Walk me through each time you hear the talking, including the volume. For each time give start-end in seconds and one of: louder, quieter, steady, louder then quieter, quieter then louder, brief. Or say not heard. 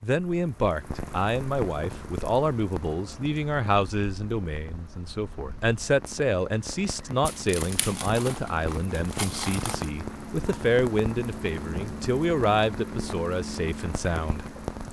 0.0-14.4 steady.